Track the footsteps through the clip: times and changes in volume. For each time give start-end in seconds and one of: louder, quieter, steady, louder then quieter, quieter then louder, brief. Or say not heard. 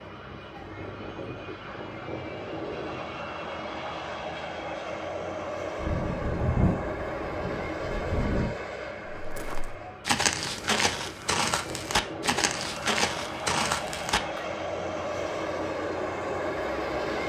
9.1-14.4 steady.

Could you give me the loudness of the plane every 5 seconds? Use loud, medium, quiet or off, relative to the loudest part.
medium, loud, medium, loud.